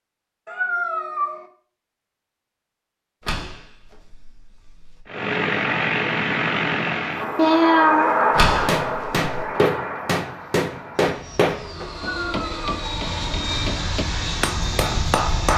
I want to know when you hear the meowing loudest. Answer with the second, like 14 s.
8 s.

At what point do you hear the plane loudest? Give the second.
8 s.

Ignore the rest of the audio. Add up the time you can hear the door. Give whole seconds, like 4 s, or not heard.
3 s.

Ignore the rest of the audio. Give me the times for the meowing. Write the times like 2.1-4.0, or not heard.
0.5-1.4, 7.3-8.2, 11.9-12.8.